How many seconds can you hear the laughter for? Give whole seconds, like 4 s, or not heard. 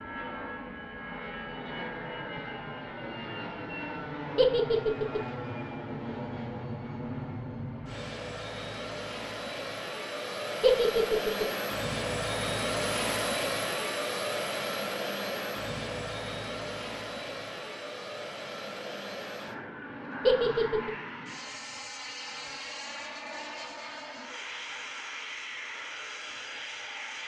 2 s.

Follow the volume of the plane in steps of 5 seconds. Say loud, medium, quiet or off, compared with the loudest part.
medium, medium, loud, medium, medium, medium.